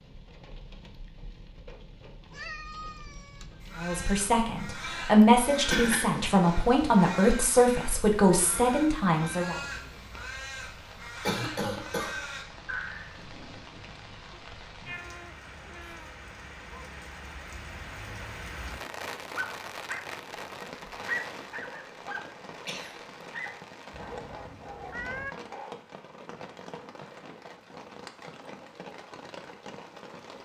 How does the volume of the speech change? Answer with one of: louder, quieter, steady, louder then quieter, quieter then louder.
steady.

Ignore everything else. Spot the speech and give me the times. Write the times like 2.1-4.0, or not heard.
3.8-9.6.